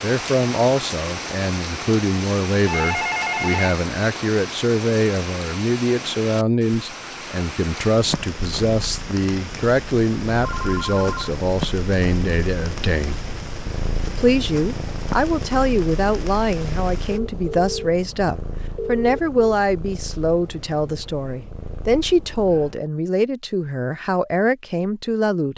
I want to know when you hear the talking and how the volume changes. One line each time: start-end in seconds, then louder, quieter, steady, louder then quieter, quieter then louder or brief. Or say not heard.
0.0-13.2 steady
14.1-25.5 steady.